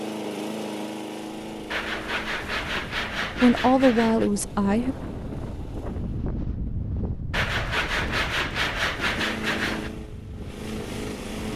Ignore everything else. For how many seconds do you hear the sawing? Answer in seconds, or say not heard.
5 s.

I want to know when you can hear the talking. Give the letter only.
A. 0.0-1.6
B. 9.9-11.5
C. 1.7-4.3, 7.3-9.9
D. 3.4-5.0
D.